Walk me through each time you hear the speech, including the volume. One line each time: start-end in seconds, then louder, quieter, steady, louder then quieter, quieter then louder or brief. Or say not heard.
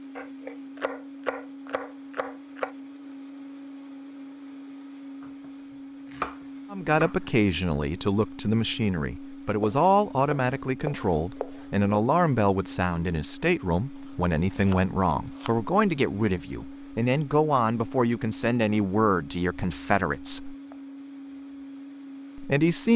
6.7-20.6 steady
22.4-22.9 brief.